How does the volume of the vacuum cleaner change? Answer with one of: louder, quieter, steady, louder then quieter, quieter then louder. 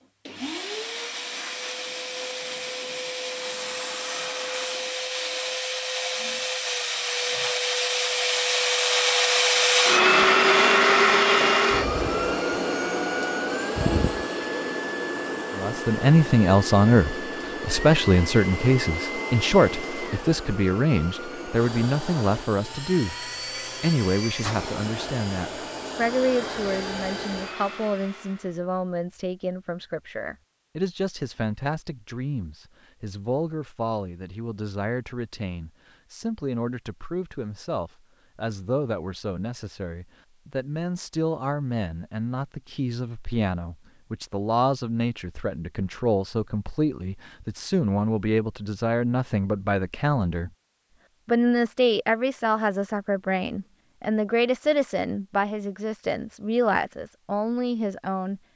louder then quieter.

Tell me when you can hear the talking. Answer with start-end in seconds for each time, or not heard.
15.6-50.5, 51.2-58.4.